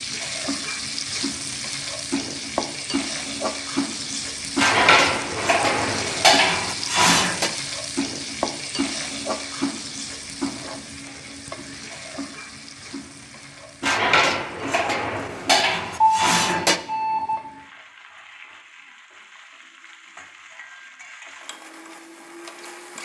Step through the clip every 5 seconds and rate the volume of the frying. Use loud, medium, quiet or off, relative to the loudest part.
loud, loud, medium, quiet, quiet.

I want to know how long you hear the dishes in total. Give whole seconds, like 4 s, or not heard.
6 s.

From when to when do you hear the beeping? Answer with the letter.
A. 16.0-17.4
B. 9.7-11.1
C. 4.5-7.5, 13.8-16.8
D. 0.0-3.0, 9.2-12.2
A.